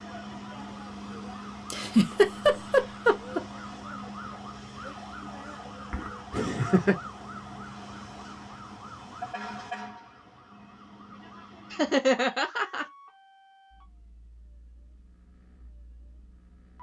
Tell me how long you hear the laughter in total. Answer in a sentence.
You can hear the laughter for 4 seconds altogether.